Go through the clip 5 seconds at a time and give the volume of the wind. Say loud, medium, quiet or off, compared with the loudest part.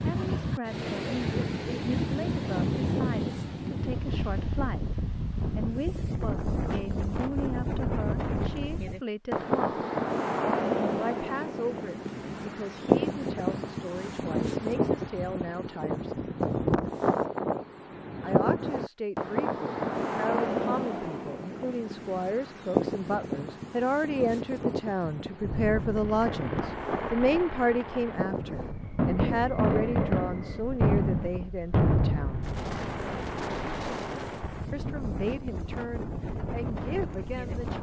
loud, loud, loud, loud, loud, medium, medium, medium.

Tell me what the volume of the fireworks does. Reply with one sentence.
The volume of the fireworks goes up, then down.